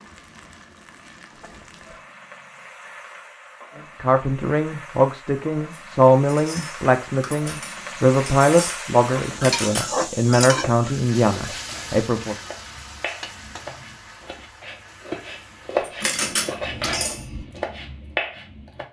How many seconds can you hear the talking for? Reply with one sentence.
The talking can be heard for 8 seconds in total.